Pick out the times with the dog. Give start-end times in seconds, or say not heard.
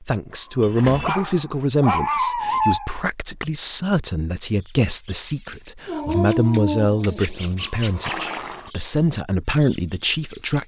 0.6-3.0, 5.8-8.6.